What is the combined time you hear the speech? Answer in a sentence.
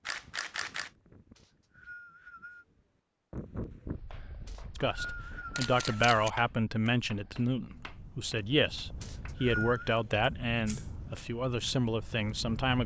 You can hear the speech for 8 seconds altogether.